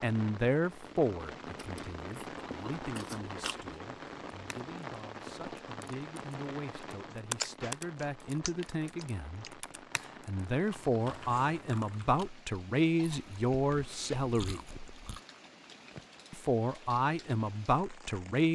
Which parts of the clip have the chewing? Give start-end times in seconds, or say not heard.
1.6-3.8, 7.4-9.5, 13.0-15.2.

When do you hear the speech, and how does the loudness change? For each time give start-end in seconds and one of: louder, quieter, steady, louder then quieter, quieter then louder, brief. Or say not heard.
0.0-14.8 quieter then louder
16.3-18.5 brief.